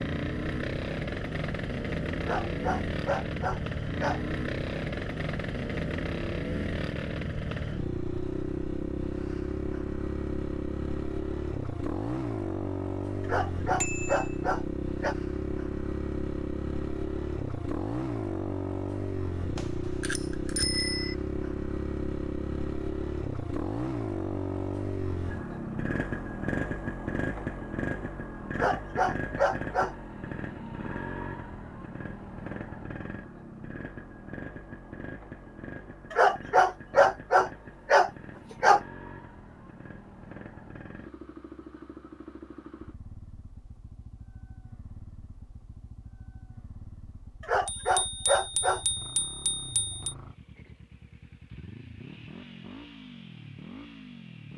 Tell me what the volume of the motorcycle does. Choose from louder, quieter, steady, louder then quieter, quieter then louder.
quieter.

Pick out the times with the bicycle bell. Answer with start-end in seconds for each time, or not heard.
13.8-14.3, 19.6-21.1, 47.6-50.1.